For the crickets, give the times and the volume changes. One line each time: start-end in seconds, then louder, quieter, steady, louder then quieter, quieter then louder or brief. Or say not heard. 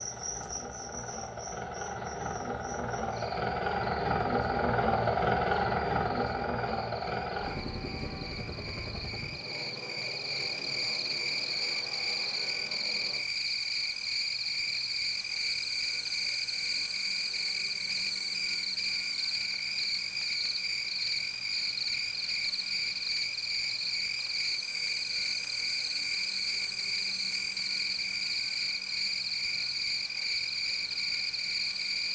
0.0-32.0 louder.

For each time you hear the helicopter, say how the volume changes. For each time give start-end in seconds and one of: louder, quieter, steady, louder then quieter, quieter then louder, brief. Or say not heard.
0.0-32.0 quieter.